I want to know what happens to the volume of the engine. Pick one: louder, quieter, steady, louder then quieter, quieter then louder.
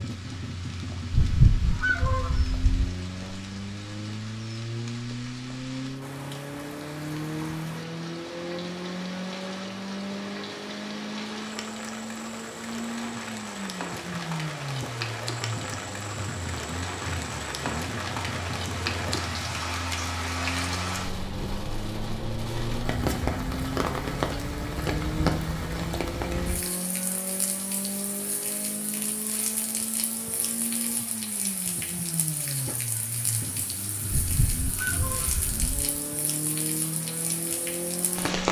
steady.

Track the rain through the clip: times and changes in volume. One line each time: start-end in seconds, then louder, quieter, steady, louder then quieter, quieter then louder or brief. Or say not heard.
0.0-38.4 louder then quieter.